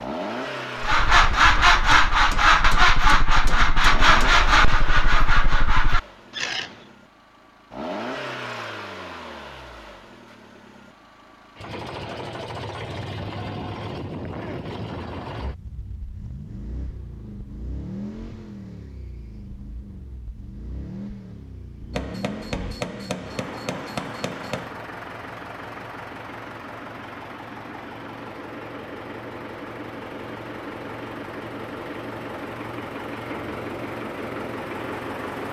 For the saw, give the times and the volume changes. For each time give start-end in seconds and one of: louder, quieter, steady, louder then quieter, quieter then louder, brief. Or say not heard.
0.8-6.7 quieter.